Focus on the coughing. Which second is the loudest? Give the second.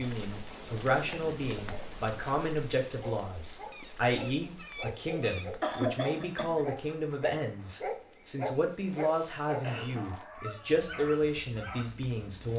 6 s.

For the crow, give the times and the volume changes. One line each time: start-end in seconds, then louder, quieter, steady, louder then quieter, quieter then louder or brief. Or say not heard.
not heard.